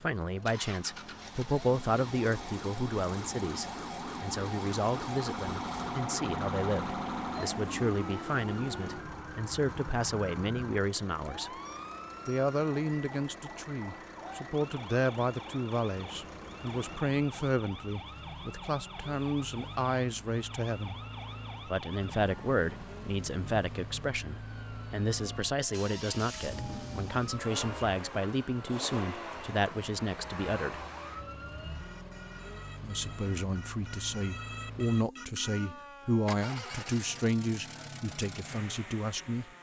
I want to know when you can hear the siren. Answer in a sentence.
You can hear the siren from 0.0 to 39.5 s.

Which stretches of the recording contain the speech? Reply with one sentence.
The speech can be heard from 0.0 to 11.5 s, from 12.2 to 21.0 s, from 21.6 to 30.9 s and from 32.8 to 39.5 s.